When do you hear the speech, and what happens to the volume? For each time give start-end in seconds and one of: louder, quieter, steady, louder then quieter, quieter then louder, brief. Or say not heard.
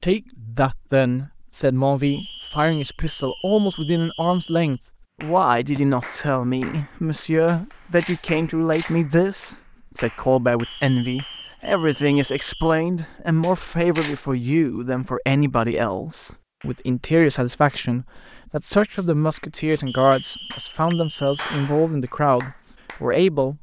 0.0-23.5 steady.